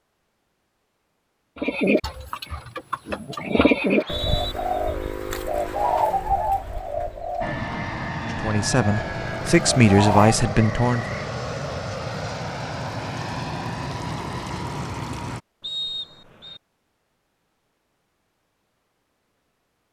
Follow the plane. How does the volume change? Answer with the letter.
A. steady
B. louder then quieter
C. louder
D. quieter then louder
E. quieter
A.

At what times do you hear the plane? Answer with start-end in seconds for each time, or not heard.
7.4-15.4.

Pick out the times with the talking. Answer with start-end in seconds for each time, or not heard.
8.3-11.2.